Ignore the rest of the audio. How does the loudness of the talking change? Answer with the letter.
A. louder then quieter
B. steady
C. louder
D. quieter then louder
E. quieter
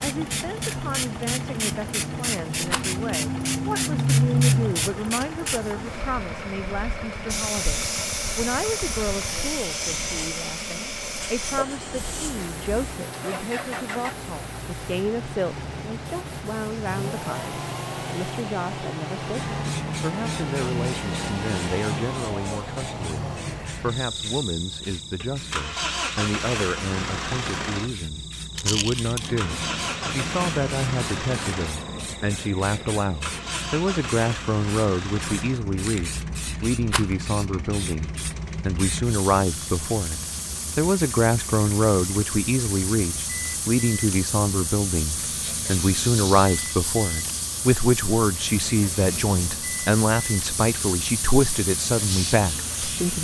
C.